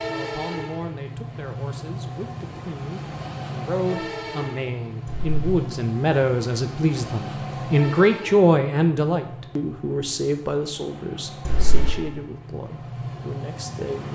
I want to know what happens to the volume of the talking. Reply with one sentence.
The loudness of the talking goes up, then down.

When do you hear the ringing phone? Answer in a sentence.
You can hear the ringing phone from 5.0 to 5.5 s and from 11.4 to 11.9 s.